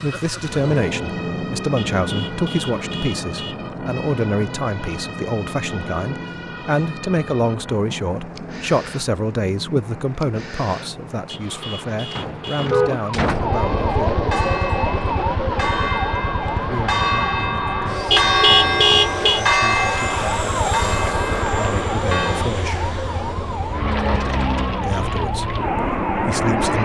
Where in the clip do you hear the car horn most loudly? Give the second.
19 s.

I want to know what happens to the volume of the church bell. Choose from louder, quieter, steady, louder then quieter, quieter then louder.
louder then quieter.